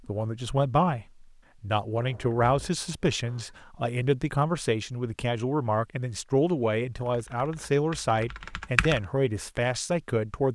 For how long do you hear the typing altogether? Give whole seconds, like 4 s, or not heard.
2 s.